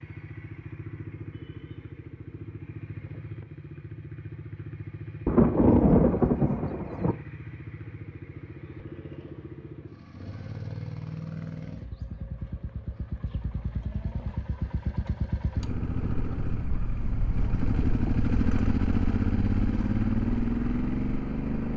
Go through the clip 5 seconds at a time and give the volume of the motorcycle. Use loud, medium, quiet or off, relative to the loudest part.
quiet, quiet, medium, loud, loud.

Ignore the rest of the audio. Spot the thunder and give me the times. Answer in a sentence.
The thunder can be heard from 5.2 to 7.2 s.